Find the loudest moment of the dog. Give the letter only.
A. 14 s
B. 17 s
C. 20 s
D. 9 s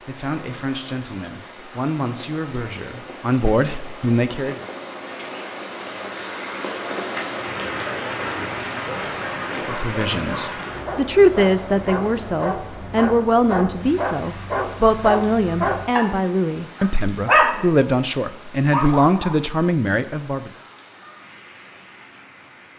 B.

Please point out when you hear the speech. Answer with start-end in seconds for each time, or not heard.
0.1-4.6, 9.7-20.5.